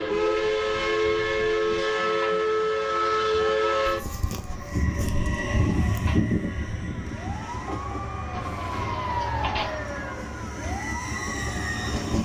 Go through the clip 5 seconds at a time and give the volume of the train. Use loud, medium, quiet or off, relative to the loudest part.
loud, medium, medium.